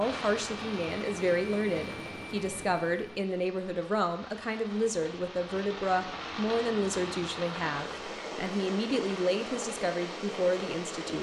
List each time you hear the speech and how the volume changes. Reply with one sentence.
The speech can be heard from 0.0 to 11.1 s, at a steady volume.